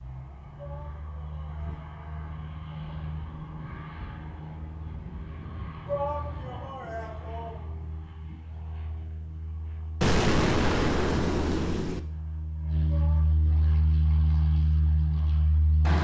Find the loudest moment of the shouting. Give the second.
6 s.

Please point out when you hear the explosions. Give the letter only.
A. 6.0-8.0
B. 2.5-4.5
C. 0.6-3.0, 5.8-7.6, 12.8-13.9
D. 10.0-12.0
D.